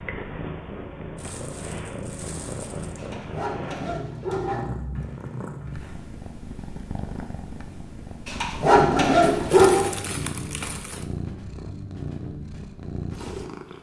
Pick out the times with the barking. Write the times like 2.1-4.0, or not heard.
3.0-4.7, 8.2-9.8.